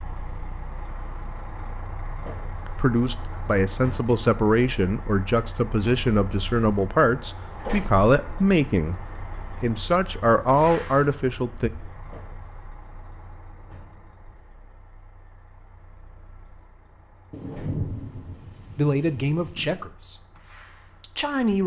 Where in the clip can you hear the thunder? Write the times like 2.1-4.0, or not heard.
17.3-19.8.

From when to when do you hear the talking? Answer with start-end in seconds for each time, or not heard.
2.6-11.7, 18.8-20.2, 21.0-21.6.